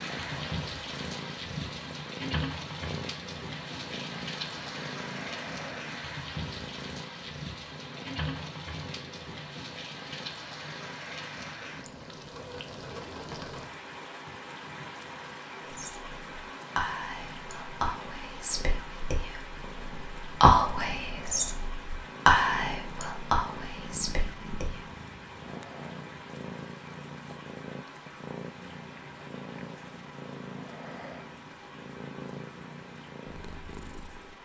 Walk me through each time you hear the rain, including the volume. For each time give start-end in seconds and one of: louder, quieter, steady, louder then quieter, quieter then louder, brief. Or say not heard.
0.0-34.4 quieter.